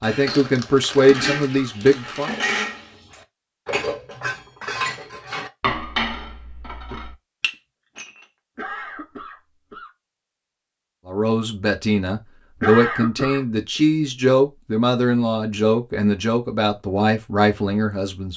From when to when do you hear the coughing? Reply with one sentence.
The coughing can be heard from 0.9 to 1.8 s, from 8.6 to 9.9 s and from 12.6 to 13.4 s.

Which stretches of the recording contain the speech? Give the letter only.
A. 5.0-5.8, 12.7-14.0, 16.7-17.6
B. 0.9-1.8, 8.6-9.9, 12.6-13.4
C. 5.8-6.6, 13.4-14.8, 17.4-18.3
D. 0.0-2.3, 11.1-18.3
D.